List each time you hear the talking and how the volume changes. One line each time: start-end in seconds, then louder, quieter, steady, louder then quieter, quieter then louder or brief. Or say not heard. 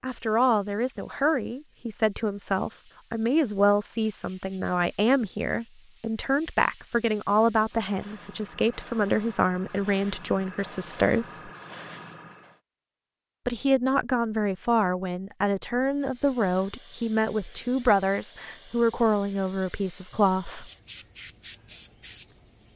0.0-11.5 steady
13.4-20.7 steady.